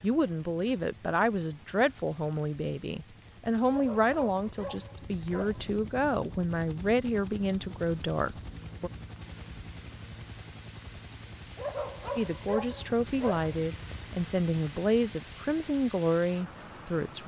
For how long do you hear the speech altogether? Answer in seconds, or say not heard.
14 s.